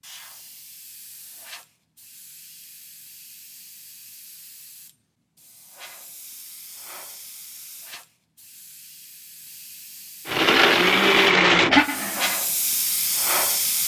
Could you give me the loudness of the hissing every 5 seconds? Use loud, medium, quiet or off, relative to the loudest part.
quiet, quiet, loud.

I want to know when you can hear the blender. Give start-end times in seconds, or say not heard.
10.2-12.4.